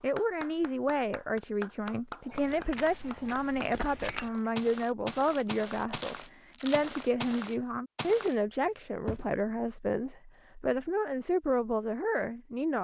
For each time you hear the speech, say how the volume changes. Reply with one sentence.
You can hear the speech from 0.0 to 12.7 s, at a steady volume.